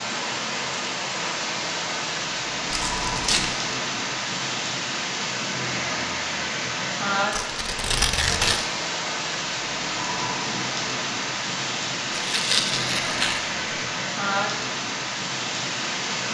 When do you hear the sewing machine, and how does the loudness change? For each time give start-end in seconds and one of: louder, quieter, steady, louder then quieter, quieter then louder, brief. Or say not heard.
not heard.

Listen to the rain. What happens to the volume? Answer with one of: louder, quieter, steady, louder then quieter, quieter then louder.
steady.